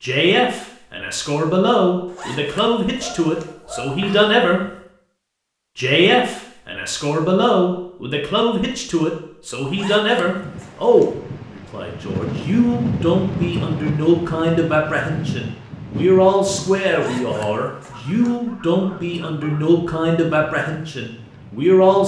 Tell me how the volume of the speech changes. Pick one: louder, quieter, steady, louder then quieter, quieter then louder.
steady.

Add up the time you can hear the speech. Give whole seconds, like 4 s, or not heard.
21 s.